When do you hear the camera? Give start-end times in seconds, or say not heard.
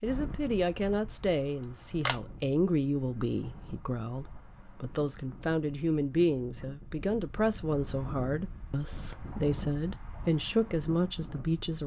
1.6-2.2.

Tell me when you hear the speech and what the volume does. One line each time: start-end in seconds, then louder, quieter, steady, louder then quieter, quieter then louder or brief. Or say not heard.
0.0-11.8 steady.